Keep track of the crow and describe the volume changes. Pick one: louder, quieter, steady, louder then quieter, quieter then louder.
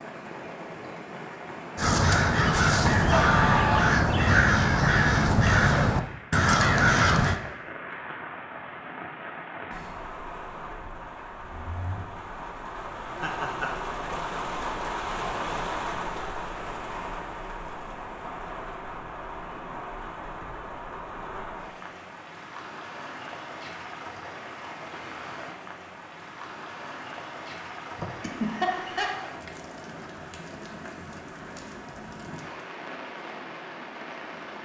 steady.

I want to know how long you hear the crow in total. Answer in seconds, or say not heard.
6 s.